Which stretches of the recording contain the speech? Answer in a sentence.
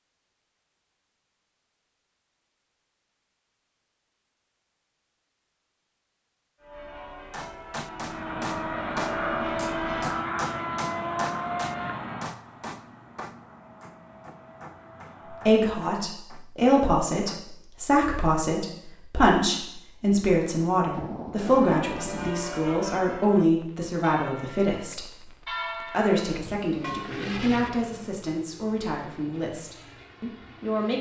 You can hear the speech from 15.3 to 30.9 s.